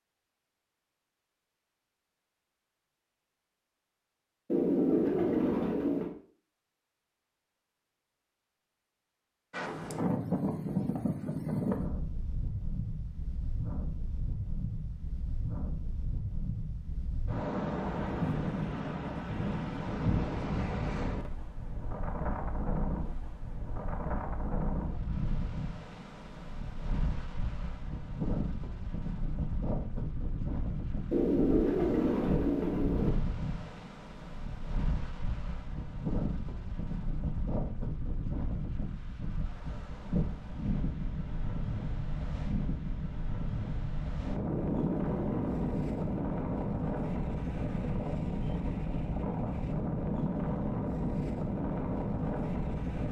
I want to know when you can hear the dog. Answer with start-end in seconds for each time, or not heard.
not heard.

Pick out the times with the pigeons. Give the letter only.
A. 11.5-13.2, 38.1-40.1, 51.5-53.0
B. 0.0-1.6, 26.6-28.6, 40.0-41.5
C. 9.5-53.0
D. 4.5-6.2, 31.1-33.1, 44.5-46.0
D.